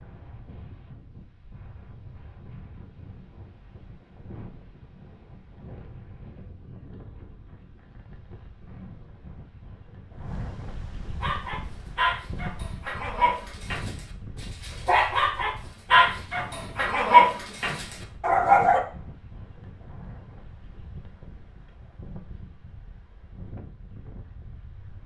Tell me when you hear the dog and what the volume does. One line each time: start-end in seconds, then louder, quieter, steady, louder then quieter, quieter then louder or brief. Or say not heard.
11.2-18.8 louder.